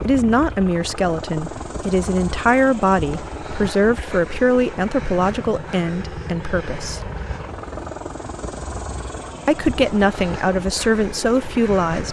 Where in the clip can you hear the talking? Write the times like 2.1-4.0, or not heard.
0.0-7.0, 9.4-12.0.